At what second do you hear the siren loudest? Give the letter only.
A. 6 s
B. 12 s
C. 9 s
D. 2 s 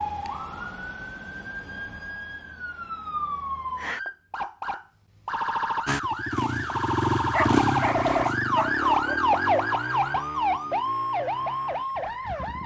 C.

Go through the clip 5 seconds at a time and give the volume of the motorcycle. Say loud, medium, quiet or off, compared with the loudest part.
off, loud, quiet.